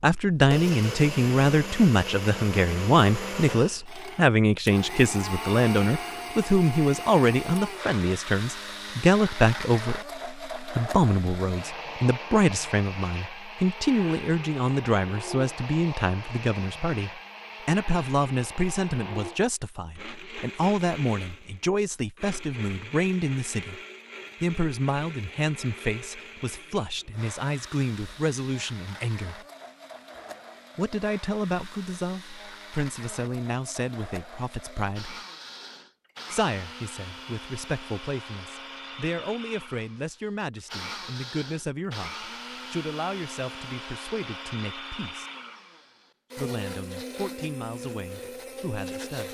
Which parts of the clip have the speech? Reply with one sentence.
You can hear the speech from 0.0 to 23.8 s, from 24.4 to 29.4 s, from 30.8 to 35.2 s, from 36.3 to 45.2 s and from 46.4 to 49.2 s.